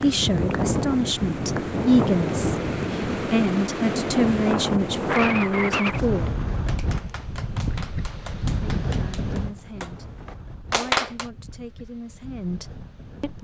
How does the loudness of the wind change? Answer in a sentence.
The loudness of the wind goes down.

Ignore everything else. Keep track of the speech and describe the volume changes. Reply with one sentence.
The volume of the speech goes down.